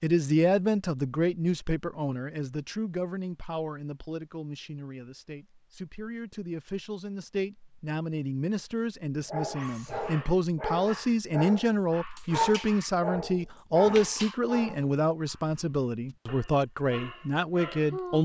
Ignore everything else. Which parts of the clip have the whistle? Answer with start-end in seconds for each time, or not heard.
not heard.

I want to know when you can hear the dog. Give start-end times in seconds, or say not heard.
9.2-18.2.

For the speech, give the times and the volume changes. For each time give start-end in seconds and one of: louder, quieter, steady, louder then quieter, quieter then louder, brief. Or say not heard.
0.0-18.2 quieter then louder.